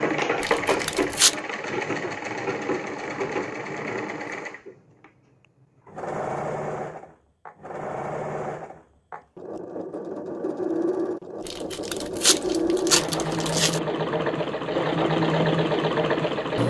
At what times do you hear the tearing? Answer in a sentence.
You can hear the tearing from 0.4 to 1.4 s and from 11.4 to 13.8 s.